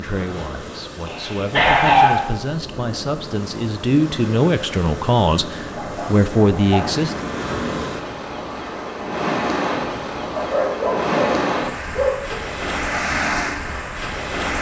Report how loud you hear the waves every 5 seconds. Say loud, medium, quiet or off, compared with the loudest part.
medium, loud, loud.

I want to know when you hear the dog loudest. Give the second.
2 s.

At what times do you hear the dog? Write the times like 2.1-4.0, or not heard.
1.1-2.4, 5.8-7.1, 10.3-11.3, 11.9-12.3.